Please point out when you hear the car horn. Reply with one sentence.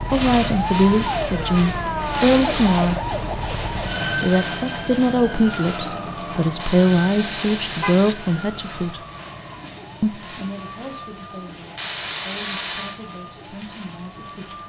The car horn can be heard from 2.2 to 2.9 s, from 6.5 to 8.2 s and from 11.8 to 13.0 s.